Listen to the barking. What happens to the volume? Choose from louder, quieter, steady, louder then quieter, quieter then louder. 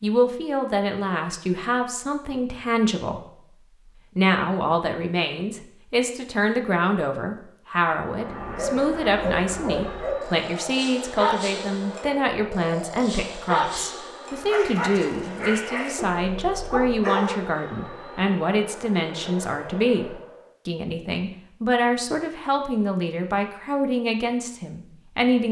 steady.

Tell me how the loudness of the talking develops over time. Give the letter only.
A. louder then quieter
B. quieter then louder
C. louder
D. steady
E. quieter
D.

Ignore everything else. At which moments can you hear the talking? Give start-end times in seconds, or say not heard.
0.0-3.2, 4.2-25.4.